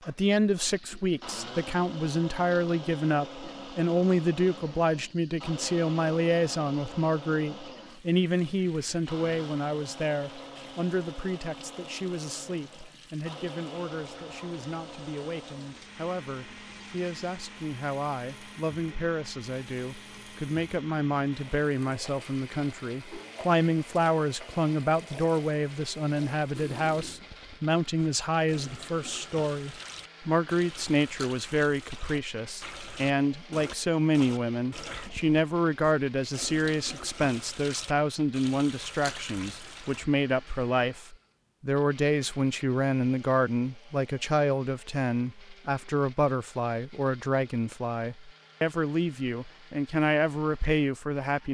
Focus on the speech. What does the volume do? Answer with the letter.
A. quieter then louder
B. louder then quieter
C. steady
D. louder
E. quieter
A.